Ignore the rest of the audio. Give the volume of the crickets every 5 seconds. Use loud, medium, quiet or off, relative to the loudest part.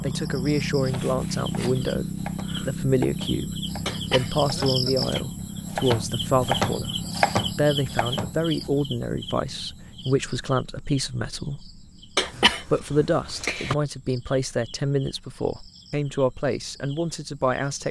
loud, loud, quiet, quiet.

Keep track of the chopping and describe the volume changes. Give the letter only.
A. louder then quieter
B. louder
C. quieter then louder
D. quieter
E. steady
B.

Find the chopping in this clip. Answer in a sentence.
You can hear the chopping from 0.9 to 8.7 s.